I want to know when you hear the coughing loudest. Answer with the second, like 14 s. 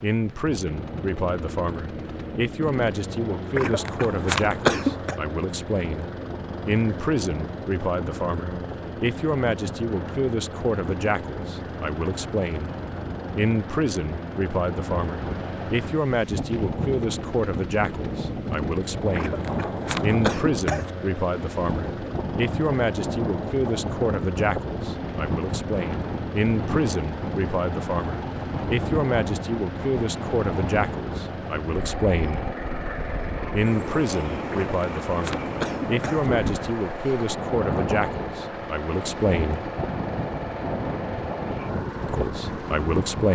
5 s.